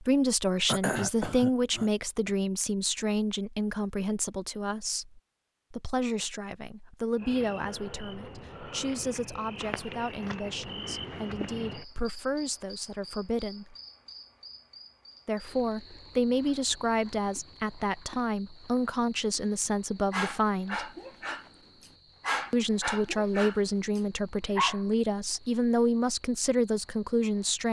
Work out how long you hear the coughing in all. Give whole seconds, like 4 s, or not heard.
2 s.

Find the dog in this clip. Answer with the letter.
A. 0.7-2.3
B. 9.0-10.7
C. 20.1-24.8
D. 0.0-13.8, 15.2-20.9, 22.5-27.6
C.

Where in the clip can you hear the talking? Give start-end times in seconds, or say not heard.
0.0-13.8, 15.2-20.9, 22.5-27.6.